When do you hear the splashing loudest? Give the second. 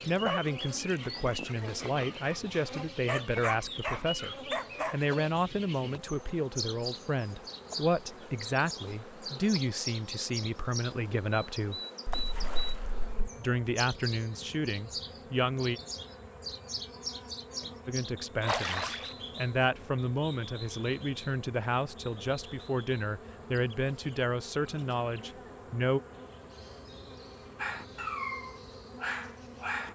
19 s.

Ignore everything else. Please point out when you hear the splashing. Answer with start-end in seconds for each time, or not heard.
12.1-13.1, 18.4-19.1.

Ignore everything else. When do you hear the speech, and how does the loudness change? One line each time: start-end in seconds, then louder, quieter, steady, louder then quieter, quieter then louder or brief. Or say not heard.
0.1-11.8 steady
13.2-15.8 brief
17.9-26.0 steady.